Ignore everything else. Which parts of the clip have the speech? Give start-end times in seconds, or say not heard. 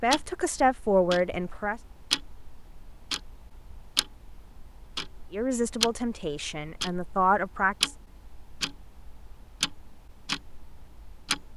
0.0-1.8, 5.3-7.9.